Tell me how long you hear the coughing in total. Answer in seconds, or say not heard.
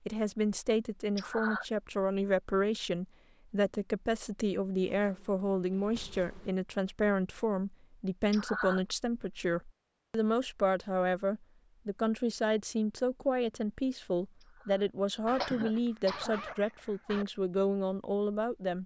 3 s.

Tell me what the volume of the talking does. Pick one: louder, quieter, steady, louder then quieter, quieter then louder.
steady.